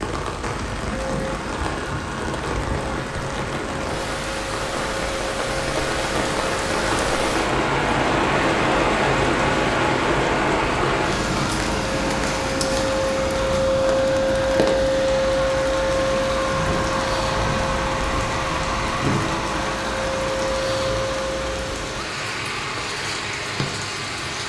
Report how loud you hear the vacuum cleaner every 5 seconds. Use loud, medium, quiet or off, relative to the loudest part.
medium, medium, loud, loud, medium.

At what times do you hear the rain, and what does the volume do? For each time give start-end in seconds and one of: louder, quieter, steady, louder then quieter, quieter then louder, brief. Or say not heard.
0.0-24.4 louder then quieter.